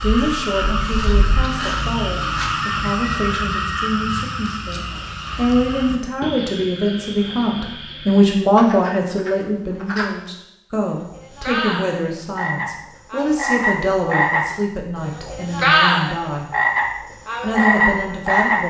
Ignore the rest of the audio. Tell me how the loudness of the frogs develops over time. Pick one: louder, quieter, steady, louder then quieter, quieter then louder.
quieter then louder.